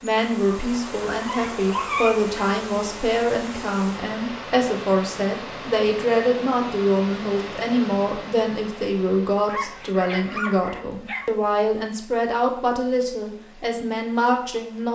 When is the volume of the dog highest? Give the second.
2 s.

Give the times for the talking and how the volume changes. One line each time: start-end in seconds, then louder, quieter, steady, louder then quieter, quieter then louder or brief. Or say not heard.
0.0-14.8 steady.